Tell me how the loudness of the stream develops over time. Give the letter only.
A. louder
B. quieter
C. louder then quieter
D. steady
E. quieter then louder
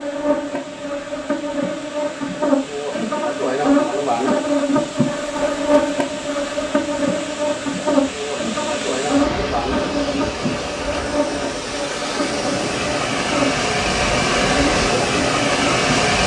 A.